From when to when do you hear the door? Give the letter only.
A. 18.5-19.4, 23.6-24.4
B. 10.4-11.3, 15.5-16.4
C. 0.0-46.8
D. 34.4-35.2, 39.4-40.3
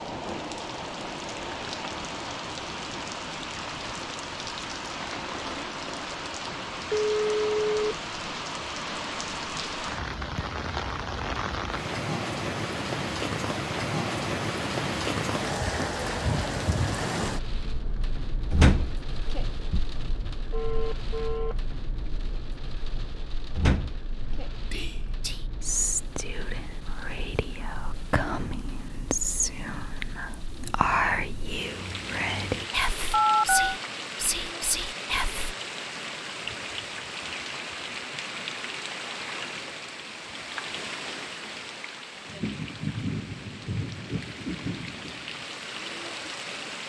A.